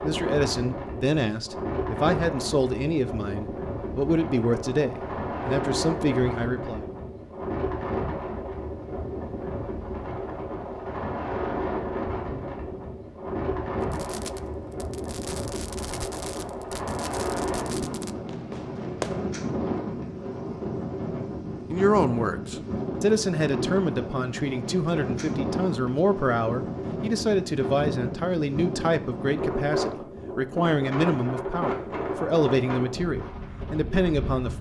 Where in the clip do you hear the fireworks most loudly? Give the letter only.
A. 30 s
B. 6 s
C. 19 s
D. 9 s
C.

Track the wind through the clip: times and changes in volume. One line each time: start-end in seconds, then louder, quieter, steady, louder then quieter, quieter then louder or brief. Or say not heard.
0.0-34.5 steady.